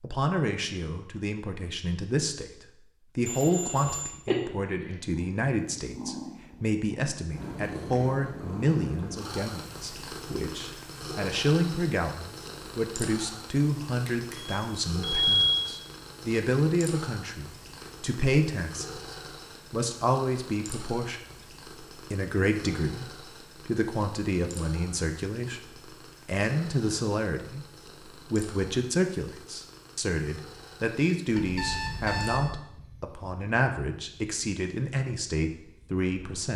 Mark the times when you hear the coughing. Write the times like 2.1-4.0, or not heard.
not heard.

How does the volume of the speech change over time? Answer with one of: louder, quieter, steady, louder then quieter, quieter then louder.
steady.